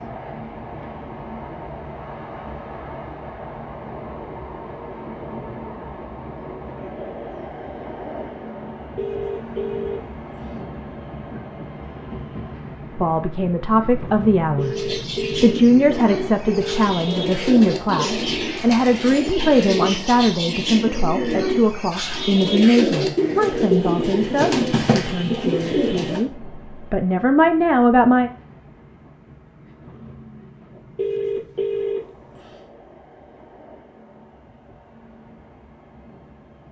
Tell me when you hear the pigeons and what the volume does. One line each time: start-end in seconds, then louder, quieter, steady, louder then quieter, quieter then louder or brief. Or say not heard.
14.6-26.2 louder.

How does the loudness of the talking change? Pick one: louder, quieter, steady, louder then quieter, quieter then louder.
steady.